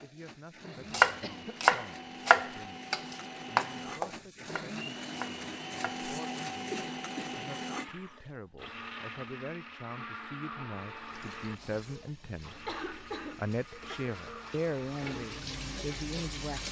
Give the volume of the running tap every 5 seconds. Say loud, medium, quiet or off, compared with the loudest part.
off, off, quiet, loud.